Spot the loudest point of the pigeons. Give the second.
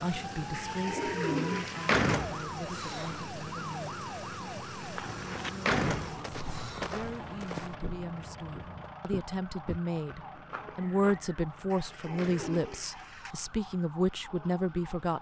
1 s.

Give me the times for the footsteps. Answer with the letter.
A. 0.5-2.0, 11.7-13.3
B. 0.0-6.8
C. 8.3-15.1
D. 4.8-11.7
D.